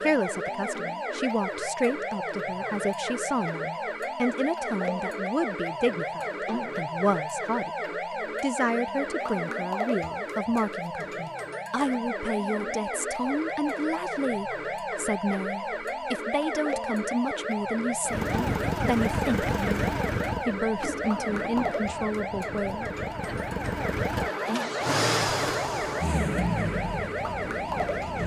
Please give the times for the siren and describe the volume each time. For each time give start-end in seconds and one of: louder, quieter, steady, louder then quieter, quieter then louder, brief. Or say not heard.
0.0-28.2 steady.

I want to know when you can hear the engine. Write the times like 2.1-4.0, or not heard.
18.1-28.2.